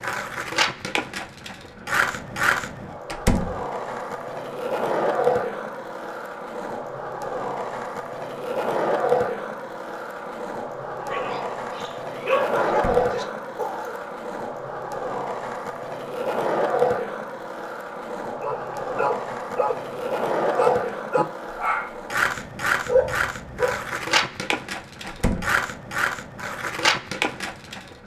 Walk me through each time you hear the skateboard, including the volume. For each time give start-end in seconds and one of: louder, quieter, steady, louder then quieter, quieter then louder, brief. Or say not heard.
0.0-28.0 steady.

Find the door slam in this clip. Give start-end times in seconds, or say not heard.
3.0-3.6, 12.7-13.1, 25.1-25.6.